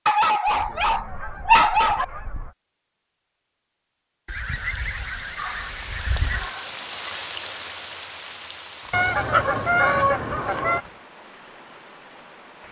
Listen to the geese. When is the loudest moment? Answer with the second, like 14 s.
10 s.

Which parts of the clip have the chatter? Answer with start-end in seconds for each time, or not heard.
not heard.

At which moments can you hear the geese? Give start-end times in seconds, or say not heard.
0.5-2.5, 4.2-6.5, 8.9-10.8.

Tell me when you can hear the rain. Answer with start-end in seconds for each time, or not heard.
4.2-12.6.